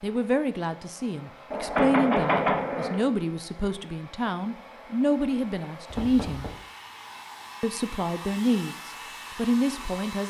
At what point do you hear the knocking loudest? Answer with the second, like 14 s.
2 s.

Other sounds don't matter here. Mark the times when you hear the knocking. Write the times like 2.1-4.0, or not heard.
1.5-3.0, 5.9-6.6.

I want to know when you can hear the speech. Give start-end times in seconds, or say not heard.
0.0-6.5, 7.6-10.2.